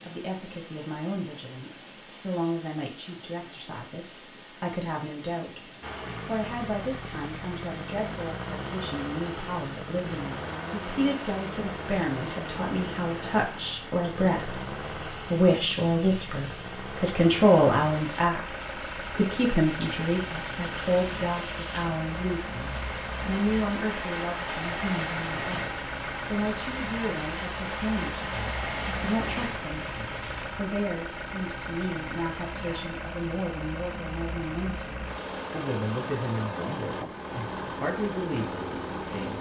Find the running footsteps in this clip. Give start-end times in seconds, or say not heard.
not heard.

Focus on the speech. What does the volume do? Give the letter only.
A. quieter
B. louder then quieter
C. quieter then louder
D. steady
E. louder
B.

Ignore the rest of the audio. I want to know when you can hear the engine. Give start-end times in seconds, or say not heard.
5.8-39.3.